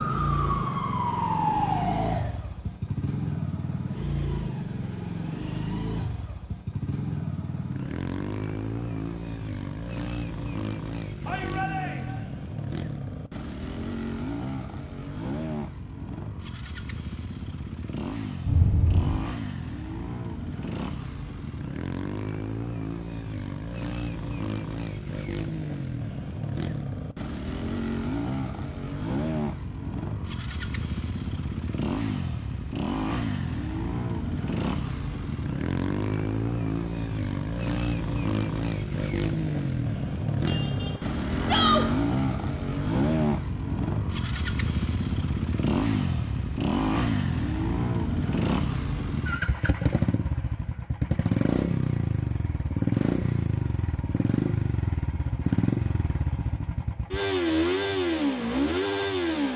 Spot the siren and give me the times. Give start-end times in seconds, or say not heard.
0.0-2.4.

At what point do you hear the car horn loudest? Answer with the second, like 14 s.
19 s.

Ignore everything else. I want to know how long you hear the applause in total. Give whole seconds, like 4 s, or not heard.
not heard.